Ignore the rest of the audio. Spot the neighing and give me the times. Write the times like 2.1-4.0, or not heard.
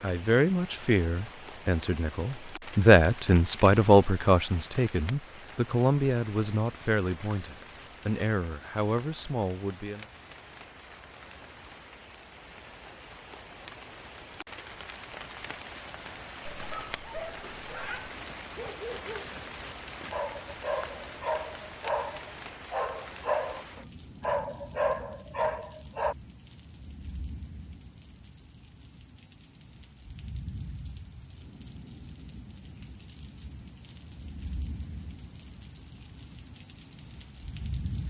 not heard.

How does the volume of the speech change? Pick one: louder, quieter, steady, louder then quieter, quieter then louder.
louder then quieter.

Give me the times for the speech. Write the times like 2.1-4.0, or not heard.
0.0-10.1.